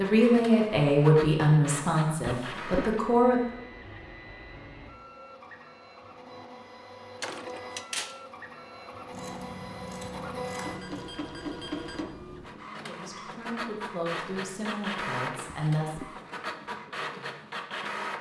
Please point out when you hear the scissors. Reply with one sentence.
The scissors can be heard from 9.1 to 11.1 s.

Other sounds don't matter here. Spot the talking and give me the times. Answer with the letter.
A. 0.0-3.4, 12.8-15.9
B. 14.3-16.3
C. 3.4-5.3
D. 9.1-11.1
A.